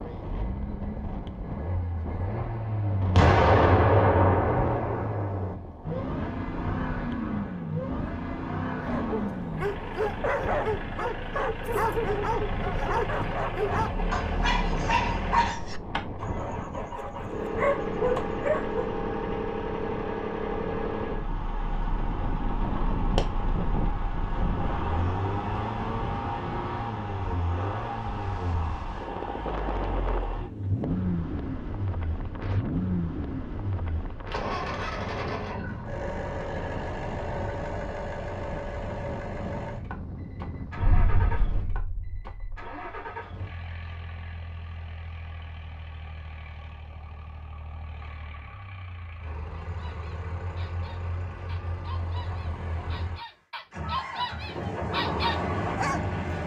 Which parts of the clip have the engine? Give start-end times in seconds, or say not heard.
0.2-56.4.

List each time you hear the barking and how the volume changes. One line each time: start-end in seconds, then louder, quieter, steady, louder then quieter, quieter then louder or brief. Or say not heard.
8.8-18.9 steady
49.5-56.1 louder.